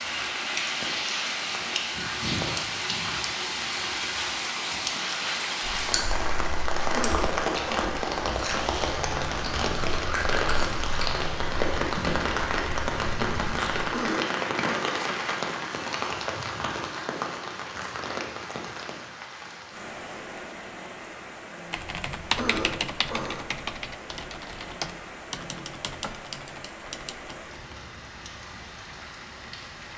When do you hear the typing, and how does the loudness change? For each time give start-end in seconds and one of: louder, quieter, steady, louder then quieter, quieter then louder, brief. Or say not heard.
21.7-27.6 quieter.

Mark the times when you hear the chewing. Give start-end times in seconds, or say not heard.
5.8-13.9.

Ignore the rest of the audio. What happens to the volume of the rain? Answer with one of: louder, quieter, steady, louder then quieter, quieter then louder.
quieter.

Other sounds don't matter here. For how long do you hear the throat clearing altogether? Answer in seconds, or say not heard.
3 s.